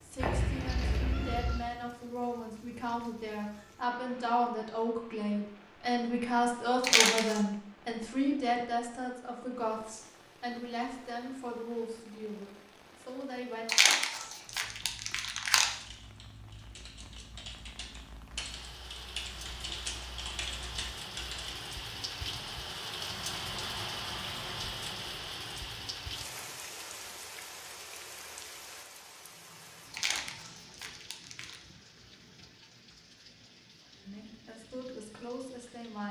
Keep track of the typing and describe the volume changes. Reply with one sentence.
The volume of the typing goes up.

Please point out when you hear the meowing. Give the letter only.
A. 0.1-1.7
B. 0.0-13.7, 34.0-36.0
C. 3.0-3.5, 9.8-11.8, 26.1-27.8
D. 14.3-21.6
A.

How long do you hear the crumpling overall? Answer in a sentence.
You can hear the crumpling for 4 seconds altogether.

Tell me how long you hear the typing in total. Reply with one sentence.
The typing can be heard for 7 seconds in total.